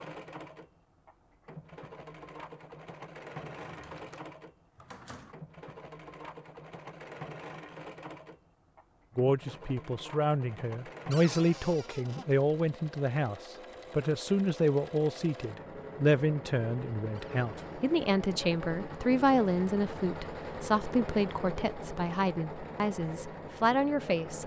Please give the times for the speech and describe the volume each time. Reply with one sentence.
The speech can be heard from 9.2 to 24.4 s, at a steady volume.